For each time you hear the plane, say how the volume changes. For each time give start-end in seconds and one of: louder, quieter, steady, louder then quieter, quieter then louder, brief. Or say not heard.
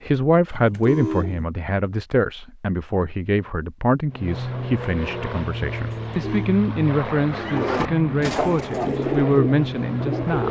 4.0-10.4 steady.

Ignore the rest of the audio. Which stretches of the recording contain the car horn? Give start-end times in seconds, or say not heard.
0.6-1.4, 6.1-6.5.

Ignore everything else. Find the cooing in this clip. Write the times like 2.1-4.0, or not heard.
7.2-10.4.